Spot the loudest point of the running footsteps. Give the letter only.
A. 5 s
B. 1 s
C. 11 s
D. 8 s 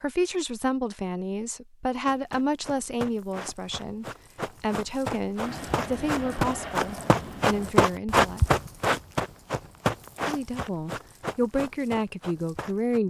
D.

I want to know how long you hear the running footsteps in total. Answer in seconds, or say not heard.
11 s.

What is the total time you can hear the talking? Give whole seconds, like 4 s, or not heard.
11 s.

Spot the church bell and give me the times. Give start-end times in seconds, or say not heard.
not heard.